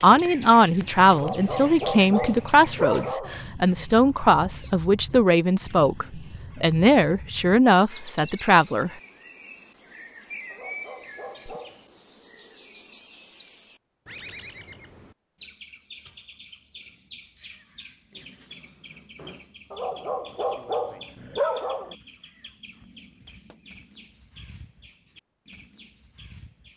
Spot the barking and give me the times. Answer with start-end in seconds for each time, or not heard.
1.1-3.4, 10.5-11.9, 19.7-21.9.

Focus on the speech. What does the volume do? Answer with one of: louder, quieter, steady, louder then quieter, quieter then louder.
steady.